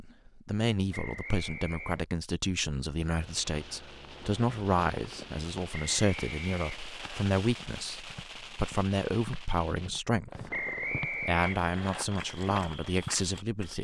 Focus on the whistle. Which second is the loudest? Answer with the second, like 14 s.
11 s.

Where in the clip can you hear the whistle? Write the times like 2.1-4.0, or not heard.
0.9-2.0, 5.7-7.2, 10.5-12.1.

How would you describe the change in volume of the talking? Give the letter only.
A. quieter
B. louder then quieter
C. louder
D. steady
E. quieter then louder
D.